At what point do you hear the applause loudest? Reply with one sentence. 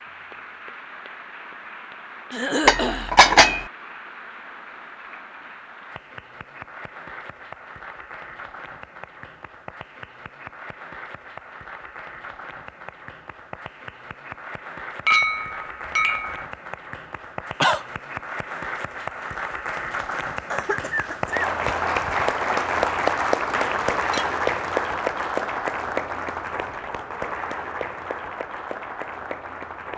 The volume of the applause peaks at 23 seconds.